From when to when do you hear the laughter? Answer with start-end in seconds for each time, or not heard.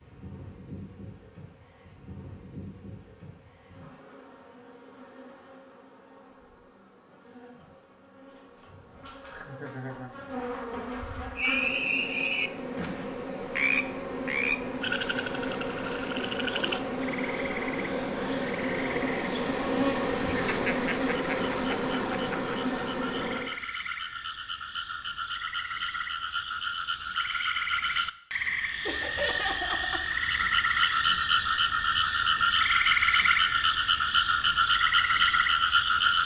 9.3-10.2, 20.4-22.6, 28.9-30.1.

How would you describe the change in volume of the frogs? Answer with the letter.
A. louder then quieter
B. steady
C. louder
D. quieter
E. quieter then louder
E.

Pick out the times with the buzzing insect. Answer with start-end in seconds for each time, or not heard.
0.0-23.6.